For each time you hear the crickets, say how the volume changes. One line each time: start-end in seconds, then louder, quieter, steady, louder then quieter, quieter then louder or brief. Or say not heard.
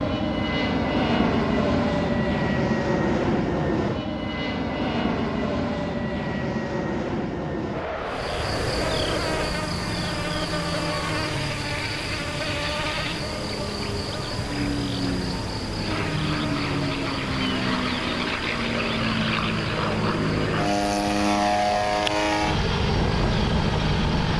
8.1-24.3 quieter.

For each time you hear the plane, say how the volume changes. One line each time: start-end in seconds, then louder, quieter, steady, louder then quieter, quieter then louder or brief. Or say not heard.
0.0-24.3 quieter then louder.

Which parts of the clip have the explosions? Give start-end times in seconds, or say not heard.
not heard.